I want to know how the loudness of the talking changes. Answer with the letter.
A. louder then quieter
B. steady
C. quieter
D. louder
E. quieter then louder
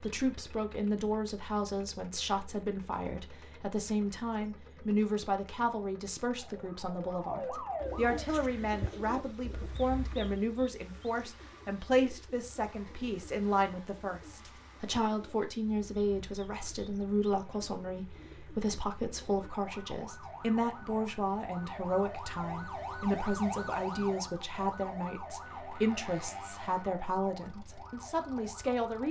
B.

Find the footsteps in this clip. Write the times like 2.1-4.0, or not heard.
not heard.